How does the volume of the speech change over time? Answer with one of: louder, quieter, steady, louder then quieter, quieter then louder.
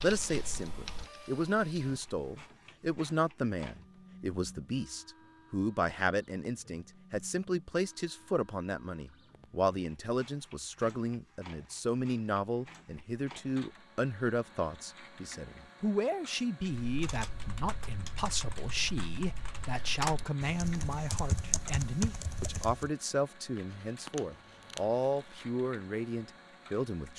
steady.